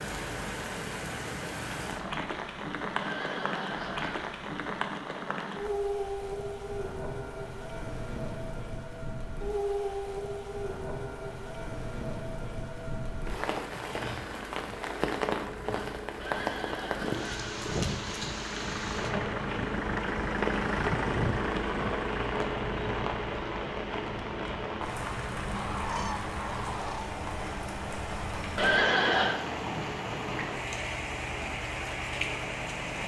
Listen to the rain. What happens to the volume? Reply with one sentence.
The volume of the rain stays about the same.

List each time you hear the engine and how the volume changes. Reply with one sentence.
You can hear the engine from 13.5 to 33.0 s, getting louder then quieter.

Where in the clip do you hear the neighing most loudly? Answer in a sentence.
The volume of the neighing peaks at 29 seconds.